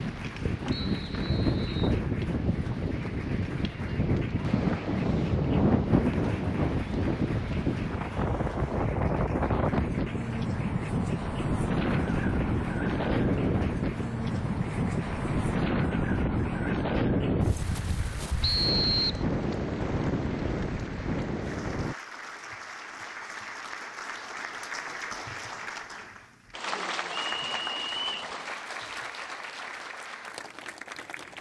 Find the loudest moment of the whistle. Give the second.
19 s.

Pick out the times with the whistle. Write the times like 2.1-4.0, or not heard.
0.7-2.0, 18.4-19.2, 27.1-28.3.